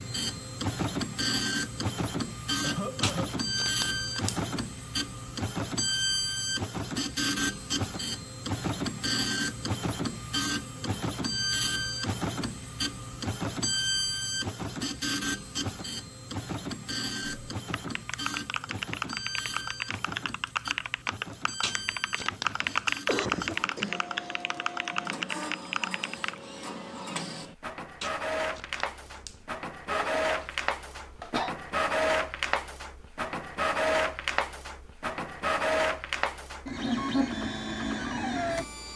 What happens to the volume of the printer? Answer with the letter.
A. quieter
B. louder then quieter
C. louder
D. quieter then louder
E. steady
D.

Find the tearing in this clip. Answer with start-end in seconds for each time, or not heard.
3.0-4.5, 21.6-22.9, 28.0-29.4.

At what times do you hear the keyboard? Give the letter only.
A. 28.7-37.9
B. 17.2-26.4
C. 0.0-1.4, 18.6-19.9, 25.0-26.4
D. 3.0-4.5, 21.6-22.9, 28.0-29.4
B.